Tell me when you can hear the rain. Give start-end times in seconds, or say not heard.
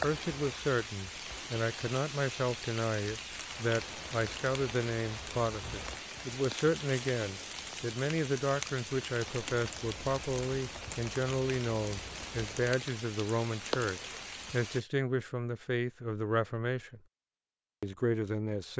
0.0-14.8.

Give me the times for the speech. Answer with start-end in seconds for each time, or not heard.
0.0-17.0, 17.8-18.7.